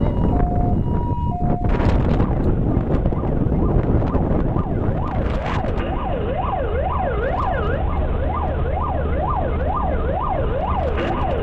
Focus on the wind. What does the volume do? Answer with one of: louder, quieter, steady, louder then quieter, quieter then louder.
quieter.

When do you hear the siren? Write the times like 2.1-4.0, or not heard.
0.0-11.3.